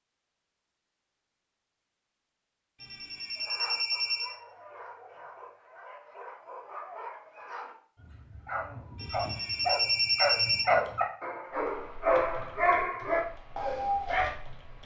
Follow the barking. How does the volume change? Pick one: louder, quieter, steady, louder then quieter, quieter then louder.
louder.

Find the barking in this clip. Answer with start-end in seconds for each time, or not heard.
3.4-14.3.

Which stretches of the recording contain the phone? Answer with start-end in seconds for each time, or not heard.
2.8-4.3, 8.9-10.7.